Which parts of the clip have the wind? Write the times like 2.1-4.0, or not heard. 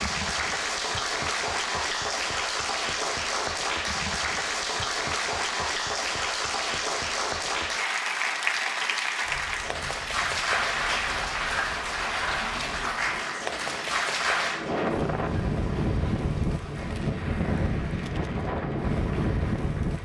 9.2-19.9.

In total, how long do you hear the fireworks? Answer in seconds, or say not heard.
not heard.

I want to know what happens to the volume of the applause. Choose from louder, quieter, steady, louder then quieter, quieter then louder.
quieter.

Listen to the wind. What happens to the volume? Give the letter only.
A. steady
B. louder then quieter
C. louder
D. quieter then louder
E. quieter
C.